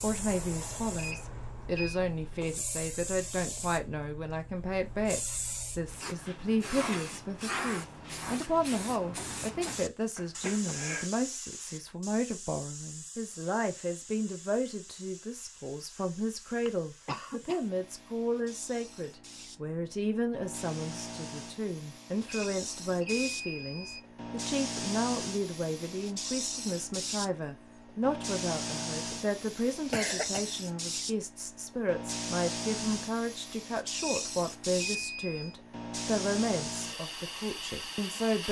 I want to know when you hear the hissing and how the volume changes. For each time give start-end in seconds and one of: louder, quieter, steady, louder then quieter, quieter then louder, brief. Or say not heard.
0.0-38.4 quieter then louder.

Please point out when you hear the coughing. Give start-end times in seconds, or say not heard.
10.2-11.1, 16.6-17.6, 29.9-30.5.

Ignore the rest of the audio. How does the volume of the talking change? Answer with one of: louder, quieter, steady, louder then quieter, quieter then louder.
steady.